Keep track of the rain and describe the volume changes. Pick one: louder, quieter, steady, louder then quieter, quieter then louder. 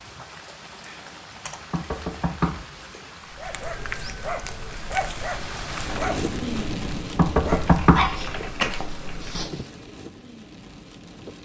louder then quieter.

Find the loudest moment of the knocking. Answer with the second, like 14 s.
8 s.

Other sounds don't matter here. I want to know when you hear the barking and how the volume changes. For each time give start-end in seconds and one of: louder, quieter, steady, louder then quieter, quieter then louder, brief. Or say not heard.
3.3-9.7 louder then quieter.